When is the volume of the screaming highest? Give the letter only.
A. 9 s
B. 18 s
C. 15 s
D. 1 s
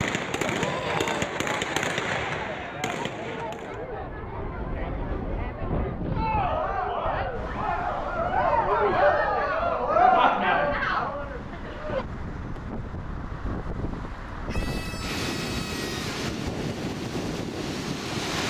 D.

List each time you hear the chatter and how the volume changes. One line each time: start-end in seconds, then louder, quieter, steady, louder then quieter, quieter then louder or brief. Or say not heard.
0.2-12.1 louder.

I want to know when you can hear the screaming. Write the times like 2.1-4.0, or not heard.
0.6-1.2, 14.4-16.1.